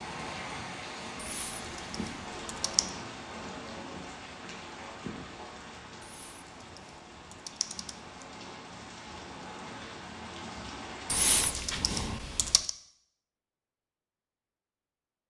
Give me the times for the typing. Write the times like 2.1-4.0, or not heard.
1.2-2.9, 6.0-8.2, 11.1-12.7.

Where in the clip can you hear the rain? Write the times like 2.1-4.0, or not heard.
0.0-11.4.